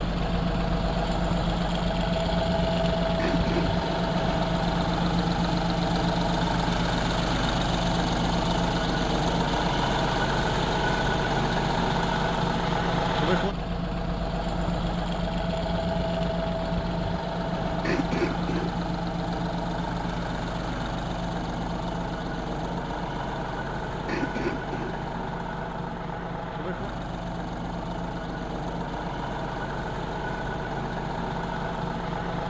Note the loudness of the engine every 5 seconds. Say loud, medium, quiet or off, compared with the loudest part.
loud, loud, loud, loud, medium, medium, medium.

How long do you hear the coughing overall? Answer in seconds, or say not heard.
3 s.